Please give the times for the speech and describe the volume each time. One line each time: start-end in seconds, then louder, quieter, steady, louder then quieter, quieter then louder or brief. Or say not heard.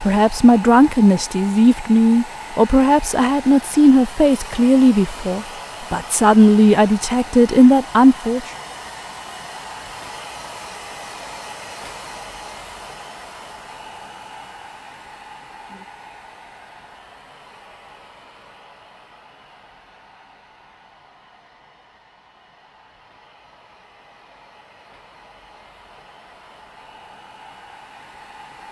0.0-8.4 steady.